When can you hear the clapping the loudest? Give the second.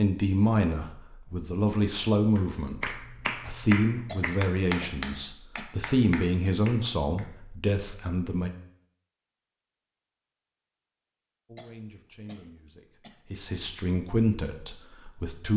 4 s.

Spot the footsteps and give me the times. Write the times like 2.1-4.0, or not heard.
not heard.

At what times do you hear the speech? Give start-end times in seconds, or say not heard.
0.0-8.5, 11.4-15.5.